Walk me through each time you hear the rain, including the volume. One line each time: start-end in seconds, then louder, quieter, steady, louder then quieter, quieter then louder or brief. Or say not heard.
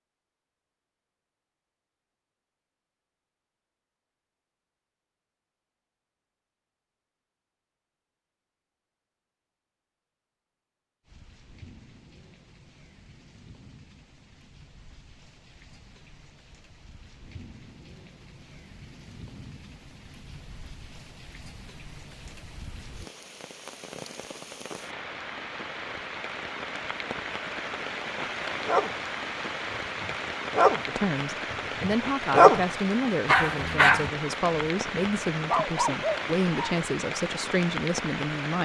11.0-38.6 louder.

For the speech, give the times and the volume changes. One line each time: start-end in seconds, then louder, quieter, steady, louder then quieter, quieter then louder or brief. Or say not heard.
30.9-38.6 steady.